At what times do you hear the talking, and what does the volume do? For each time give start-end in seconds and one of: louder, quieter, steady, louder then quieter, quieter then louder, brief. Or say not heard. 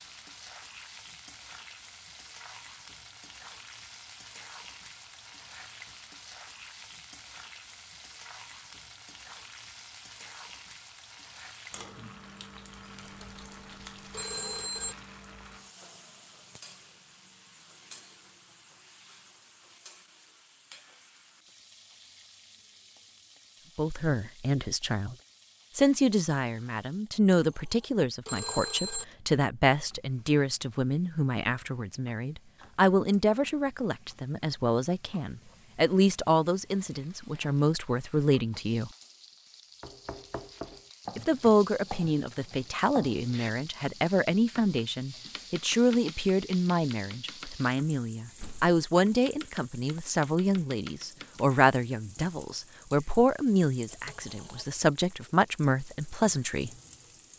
23.8-25.1 brief
25.8-38.9 steady
41.1-56.7 steady.